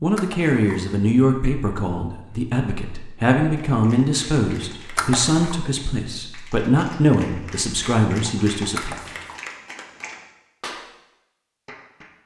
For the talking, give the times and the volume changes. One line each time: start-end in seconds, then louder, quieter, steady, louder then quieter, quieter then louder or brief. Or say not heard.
0.0-8.9 steady.